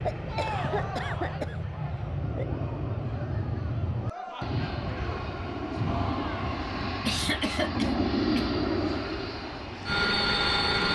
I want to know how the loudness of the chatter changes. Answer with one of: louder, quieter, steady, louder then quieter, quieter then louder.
quieter then louder.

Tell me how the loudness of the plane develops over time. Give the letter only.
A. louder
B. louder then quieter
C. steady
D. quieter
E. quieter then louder
A.